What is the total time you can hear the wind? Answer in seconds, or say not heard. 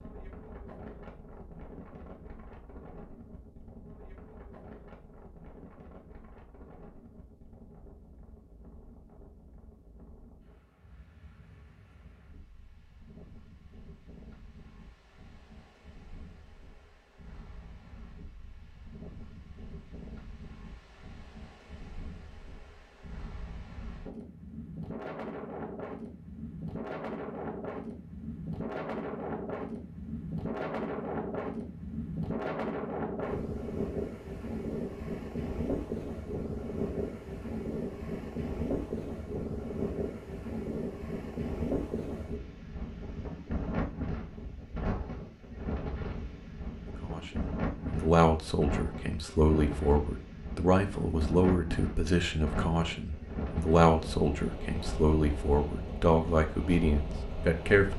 58 s.